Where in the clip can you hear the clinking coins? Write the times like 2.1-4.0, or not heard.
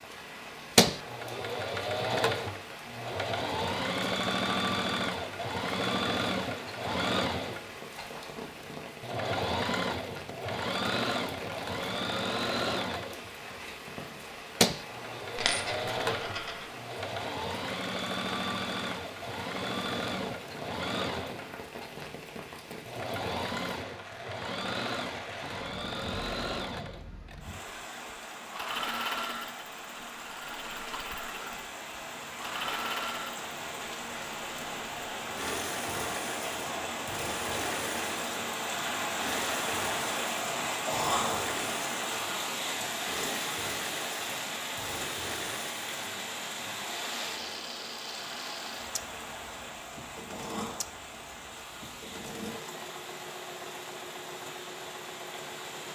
15.3-16.6.